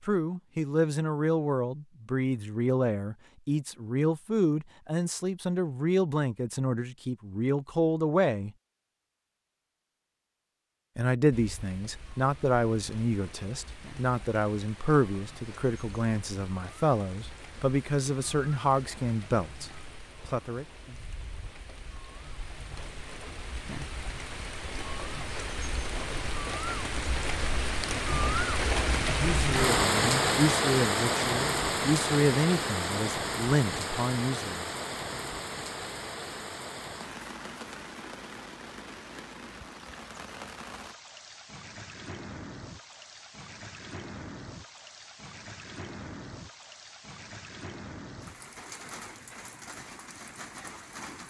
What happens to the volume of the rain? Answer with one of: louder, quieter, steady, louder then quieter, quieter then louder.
louder then quieter.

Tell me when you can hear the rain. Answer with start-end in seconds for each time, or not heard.
11.3-51.2.